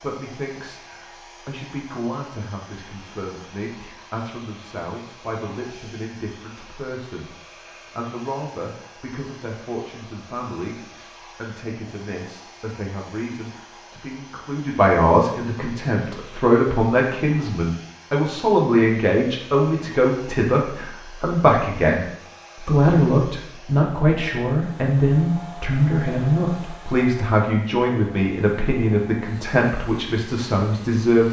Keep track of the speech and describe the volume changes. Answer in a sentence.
The loudness of the speech goes up.